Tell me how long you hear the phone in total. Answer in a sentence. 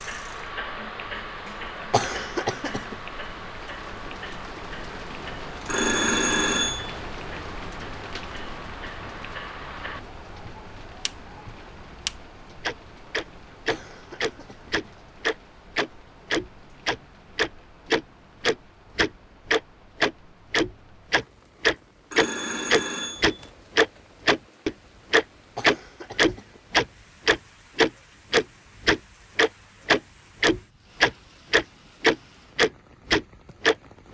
The phone can be heard for 3 seconds in total.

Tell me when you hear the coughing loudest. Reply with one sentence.
The loudest moment of the coughing is at 2 seconds.